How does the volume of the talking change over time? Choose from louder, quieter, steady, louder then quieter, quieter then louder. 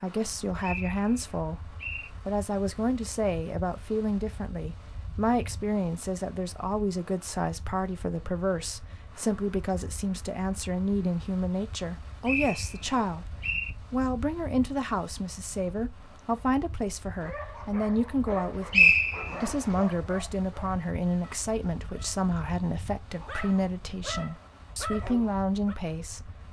steady.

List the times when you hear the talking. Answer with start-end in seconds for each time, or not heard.
0.0-13.3, 13.9-26.3.